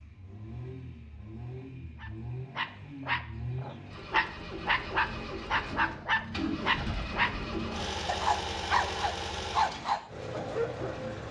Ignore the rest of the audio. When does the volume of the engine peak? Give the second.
8 s.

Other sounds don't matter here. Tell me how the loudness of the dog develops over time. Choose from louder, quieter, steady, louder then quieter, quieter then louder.
quieter.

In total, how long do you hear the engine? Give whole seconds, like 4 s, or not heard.
11 s.